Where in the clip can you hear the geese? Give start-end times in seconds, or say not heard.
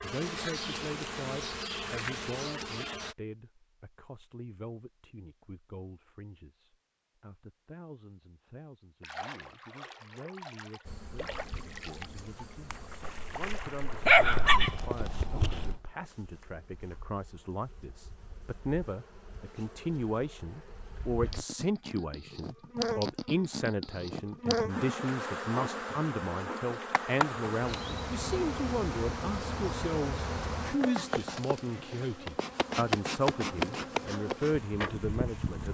not heard.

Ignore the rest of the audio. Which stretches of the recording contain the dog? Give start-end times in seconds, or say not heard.
14.1-15.8.